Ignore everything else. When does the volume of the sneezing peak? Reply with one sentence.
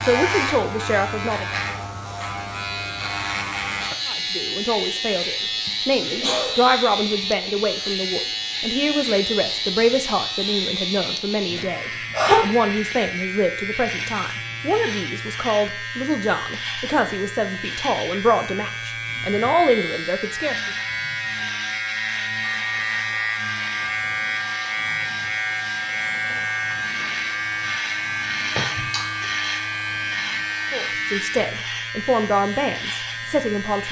The loudest moment of the sneezing is at 12 seconds.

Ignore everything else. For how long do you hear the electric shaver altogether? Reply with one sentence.
The electric shaver can be heard for 34 seconds in total.